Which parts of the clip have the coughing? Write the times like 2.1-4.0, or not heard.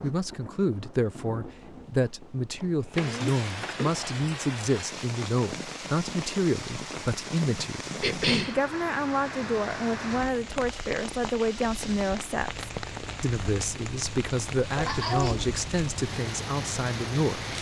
2.6-3.9, 8.0-8.6, 14.7-15.4.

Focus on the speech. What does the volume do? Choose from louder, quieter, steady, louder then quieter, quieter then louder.
steady.